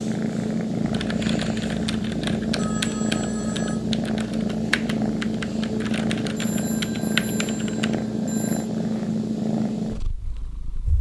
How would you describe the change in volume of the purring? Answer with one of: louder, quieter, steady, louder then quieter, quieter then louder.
steady.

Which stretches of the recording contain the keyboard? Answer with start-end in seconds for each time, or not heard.
0.8-8.1.